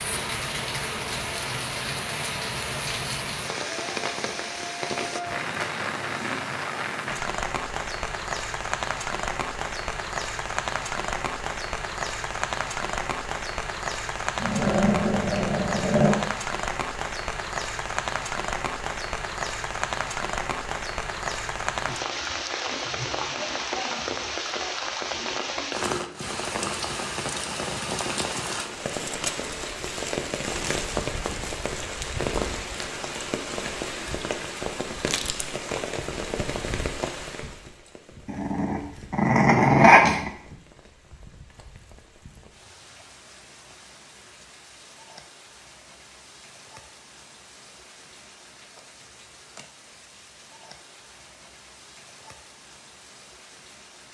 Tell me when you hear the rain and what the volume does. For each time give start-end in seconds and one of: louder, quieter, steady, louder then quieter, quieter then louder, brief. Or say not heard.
0.0-54.0 quieter.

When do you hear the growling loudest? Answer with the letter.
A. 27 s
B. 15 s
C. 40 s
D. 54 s
C.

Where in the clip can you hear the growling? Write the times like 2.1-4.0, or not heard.
14.3-16.2, 38.2-40.3.